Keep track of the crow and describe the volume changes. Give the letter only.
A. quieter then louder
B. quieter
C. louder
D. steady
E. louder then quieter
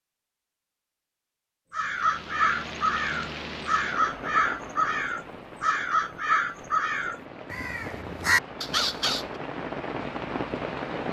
D.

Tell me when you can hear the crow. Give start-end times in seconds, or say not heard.
1.7-9.2.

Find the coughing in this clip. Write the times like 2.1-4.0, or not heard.
not heard.